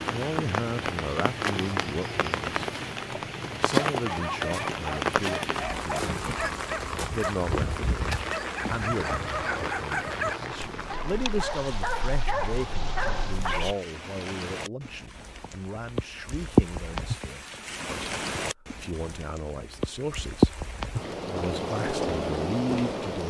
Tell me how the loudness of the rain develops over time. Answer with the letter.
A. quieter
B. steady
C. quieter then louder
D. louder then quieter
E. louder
C.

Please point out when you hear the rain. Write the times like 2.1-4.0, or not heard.
0.0-23.2.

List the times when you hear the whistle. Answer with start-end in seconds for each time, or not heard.
not heard.